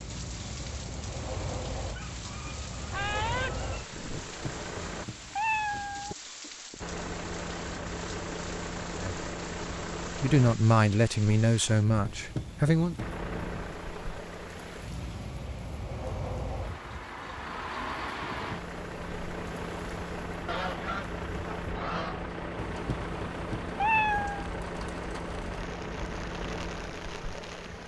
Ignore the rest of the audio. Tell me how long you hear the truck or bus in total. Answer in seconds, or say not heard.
24 s.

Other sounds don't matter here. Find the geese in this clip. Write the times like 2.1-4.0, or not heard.
1.9-4.3, 20.4-22.2.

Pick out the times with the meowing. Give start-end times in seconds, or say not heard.
4.2-6.2, 12.1-13.2, 22.8-24.4.